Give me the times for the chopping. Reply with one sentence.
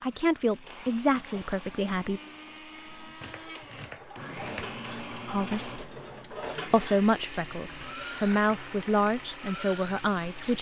The chopping can be heard from 3.2 to 4.7 s.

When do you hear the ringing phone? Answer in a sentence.
The ringing phone can't be heard in this clip.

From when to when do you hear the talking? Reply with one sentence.
The talking can be heard from 0.0 to 2.2 s, from 5.2 to 5.8 s and from 6.7 to 10.5 s.